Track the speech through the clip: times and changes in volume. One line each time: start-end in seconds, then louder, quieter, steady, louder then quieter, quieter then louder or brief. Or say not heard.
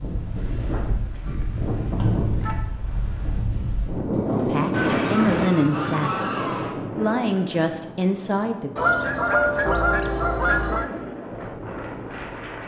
4.5-8.7 quieter then louder.